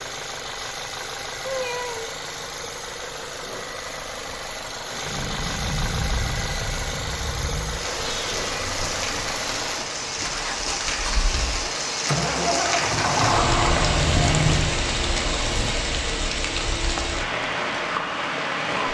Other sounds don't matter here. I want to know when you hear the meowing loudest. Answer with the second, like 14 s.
14 s.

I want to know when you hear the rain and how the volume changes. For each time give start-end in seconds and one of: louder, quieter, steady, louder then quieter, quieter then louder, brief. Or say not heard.
5.0-18.8 louder.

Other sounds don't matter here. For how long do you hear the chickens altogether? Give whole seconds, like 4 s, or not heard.
not heard.